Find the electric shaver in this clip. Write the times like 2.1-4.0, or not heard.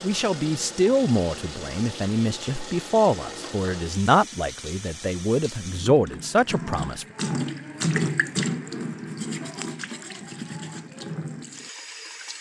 not heard.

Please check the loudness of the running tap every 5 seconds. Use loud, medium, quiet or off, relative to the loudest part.
medium, loud, medium.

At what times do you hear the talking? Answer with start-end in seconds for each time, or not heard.
0.0-7.0.